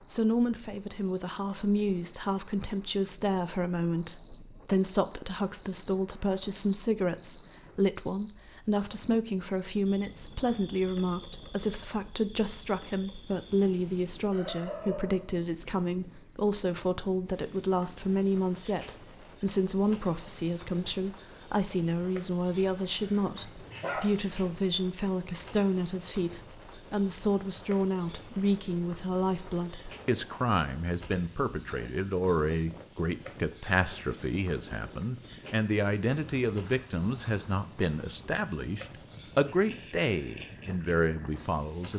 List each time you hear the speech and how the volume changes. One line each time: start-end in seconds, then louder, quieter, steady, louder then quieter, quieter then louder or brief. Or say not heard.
0.1-41.9 steady.